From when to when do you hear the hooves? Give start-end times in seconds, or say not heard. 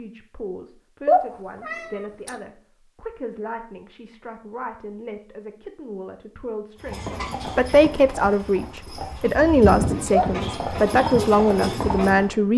6.8-12.3.